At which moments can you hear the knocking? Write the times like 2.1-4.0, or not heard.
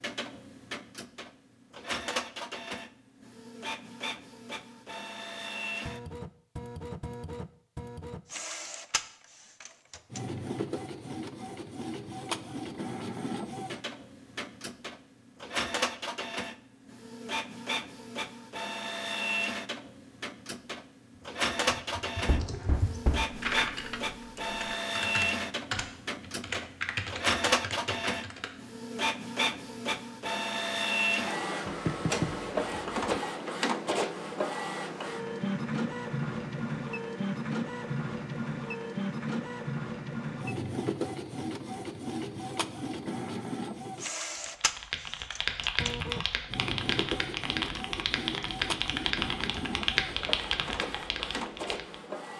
22.2-23.3, 31.6-33.1.